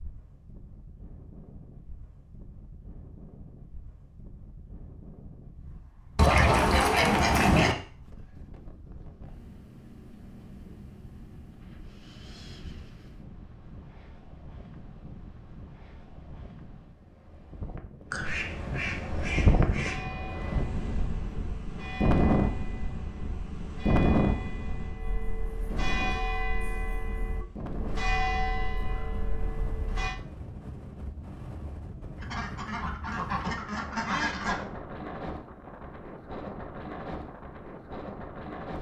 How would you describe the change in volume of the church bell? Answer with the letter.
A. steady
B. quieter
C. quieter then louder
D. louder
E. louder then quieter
D.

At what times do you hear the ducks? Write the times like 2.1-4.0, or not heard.
6.2-7.8, 18.1-20.1, 32.1-34.6.